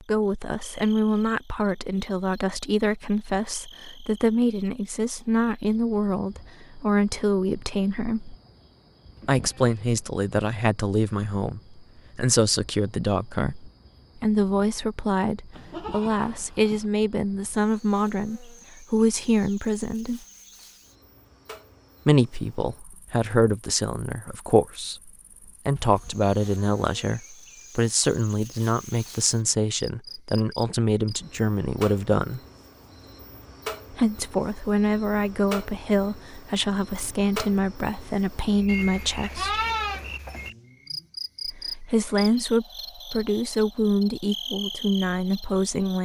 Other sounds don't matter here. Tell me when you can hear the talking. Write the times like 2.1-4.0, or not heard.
0.1-8.3, 9.2-20.2, 22.1-32.4, 33.9-39.6, 41.5-46.0.